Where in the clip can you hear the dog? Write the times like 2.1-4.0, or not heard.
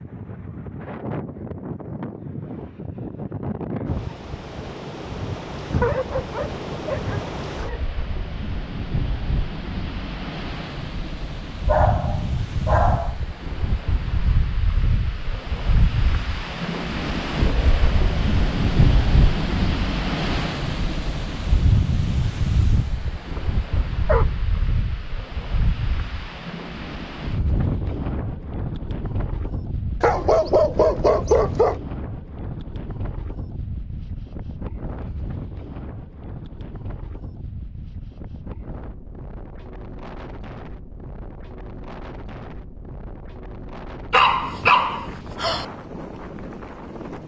5.8-7.8, 11.7-13.2, 23.4-24.7, 30.0-31.8, 44.1-45.6.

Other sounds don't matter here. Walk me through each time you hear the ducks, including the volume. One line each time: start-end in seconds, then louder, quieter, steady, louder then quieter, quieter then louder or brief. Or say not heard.
not heard.